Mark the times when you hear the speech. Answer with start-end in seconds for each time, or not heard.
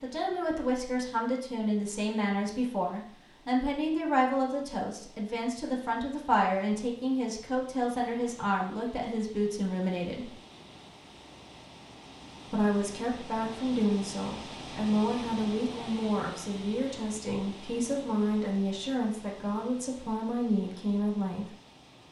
0.0-10.3, 12.4-21.4.